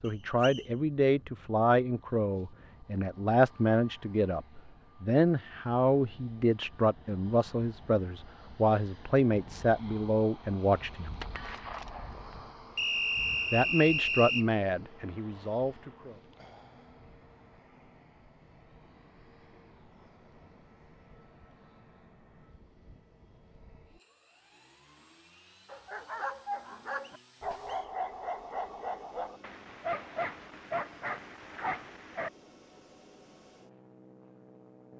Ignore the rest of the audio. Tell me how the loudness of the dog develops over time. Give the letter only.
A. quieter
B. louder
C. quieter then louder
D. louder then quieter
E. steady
E.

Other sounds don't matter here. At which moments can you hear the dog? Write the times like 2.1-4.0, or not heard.
25.6-32.3.